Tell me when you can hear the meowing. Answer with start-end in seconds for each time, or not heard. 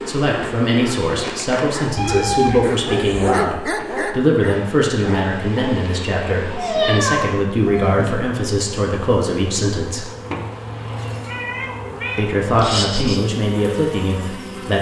1.9-3.2, 6.5-8.0, 11.2-13.2.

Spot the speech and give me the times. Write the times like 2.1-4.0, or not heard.
0.1-10.1, 12.2-14.7.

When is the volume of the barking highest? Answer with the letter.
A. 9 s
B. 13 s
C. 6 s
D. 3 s
D.